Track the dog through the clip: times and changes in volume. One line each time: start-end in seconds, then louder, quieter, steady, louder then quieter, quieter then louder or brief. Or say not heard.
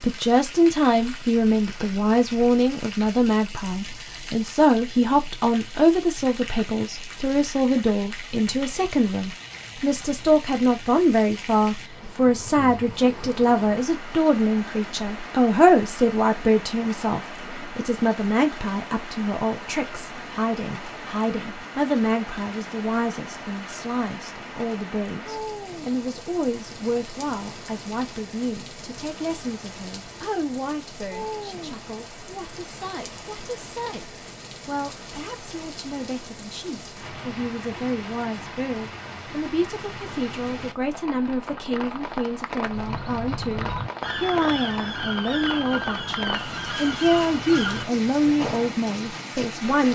not heard.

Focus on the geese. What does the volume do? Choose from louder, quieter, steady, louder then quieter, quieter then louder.
steady.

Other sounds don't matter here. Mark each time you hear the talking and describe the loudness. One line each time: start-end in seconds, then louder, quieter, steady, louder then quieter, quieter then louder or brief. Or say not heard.
0.0-49.9 quieter then louder.